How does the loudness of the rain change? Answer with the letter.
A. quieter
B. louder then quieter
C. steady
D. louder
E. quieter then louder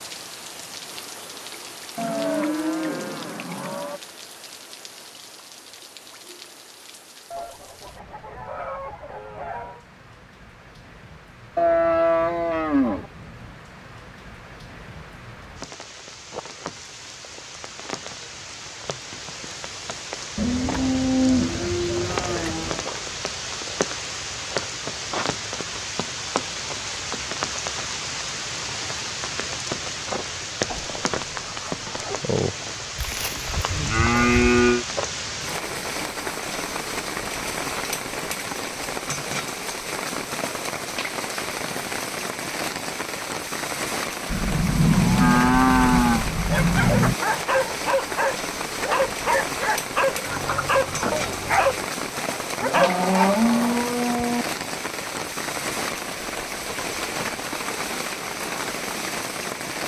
D.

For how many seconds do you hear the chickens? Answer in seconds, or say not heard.
6 s.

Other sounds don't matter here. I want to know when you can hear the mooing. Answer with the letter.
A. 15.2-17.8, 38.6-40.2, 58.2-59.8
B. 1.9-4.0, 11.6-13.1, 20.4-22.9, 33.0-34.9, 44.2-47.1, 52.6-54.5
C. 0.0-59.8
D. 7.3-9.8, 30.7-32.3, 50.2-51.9
B.